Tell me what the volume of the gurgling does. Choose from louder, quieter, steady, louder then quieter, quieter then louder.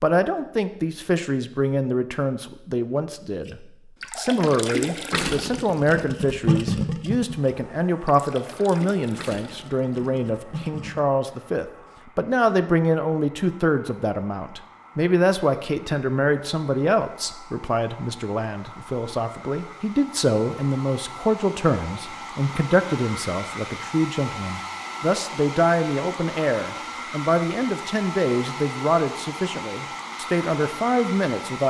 quieter.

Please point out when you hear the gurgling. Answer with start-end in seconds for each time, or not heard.
3.5-11.1.